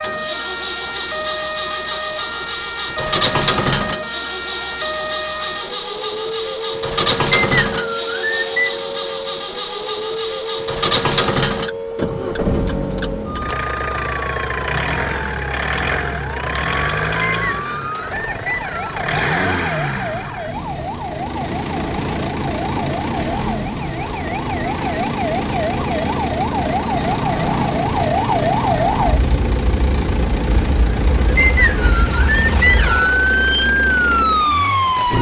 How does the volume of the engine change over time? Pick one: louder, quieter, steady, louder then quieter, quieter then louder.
steady.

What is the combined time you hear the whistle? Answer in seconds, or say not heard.
5 s.